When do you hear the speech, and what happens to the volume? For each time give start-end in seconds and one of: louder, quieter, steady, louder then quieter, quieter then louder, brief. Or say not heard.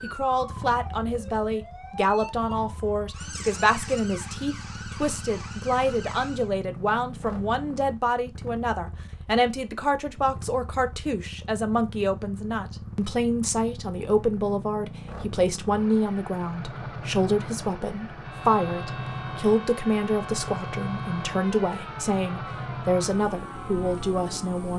0.0-24.7 steady.